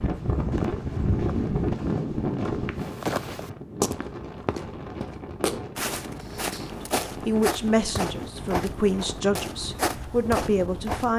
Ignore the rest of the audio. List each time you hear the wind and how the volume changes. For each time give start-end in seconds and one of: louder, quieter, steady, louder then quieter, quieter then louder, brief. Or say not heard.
0.0-11.1 quieter.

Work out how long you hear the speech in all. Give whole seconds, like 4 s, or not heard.
4 s.